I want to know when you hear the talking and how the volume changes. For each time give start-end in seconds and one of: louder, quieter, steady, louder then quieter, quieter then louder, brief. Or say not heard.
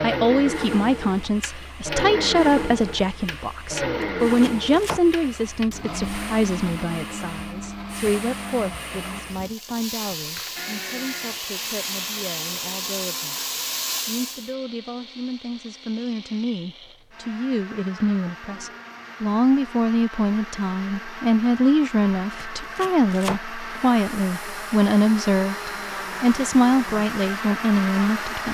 0.0-28.4 quieter then louder.